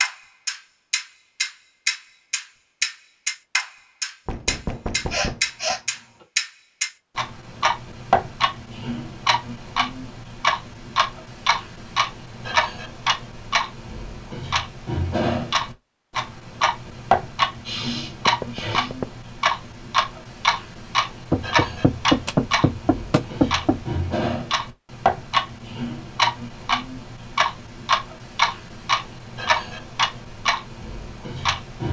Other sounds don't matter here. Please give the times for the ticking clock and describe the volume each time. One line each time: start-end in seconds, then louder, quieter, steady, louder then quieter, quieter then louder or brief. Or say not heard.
0.0-31.8 steady.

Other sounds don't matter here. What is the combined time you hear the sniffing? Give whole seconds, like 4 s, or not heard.
3 s.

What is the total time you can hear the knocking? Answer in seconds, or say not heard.
5 s.